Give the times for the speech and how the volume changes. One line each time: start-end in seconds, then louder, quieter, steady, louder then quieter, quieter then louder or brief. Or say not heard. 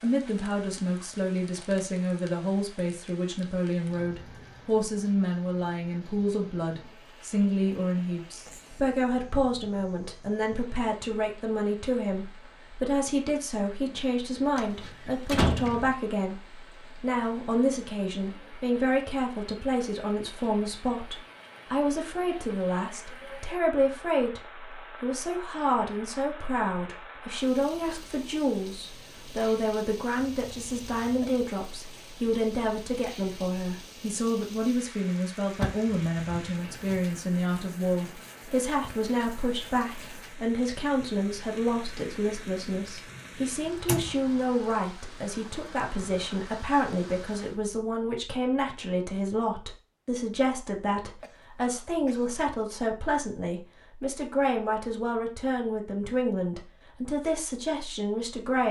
0.0-58.6 steady.